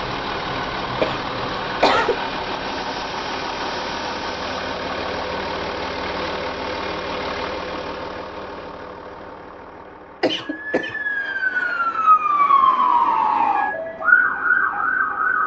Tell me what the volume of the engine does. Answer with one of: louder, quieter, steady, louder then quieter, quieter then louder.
quieter.